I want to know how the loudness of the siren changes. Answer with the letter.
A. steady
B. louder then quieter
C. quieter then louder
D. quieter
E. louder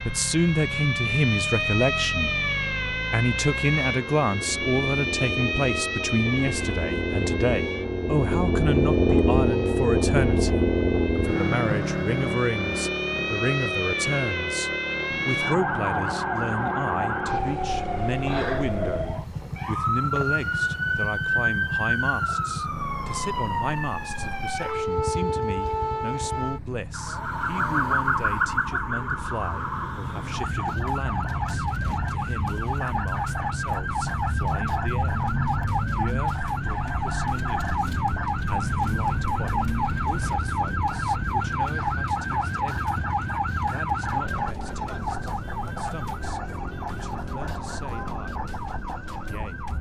A.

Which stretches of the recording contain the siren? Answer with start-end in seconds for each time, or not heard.
0.0-49.7.